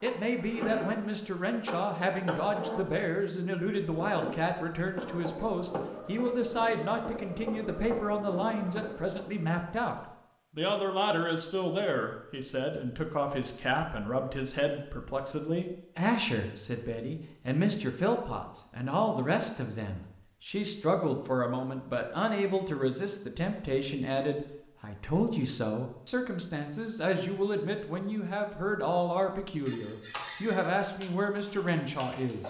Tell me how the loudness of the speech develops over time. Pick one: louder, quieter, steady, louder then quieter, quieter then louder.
steady.